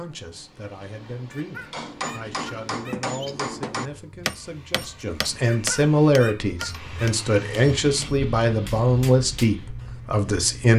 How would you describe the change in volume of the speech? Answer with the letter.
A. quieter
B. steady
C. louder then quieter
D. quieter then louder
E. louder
E.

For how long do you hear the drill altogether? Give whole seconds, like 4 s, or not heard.
not heard.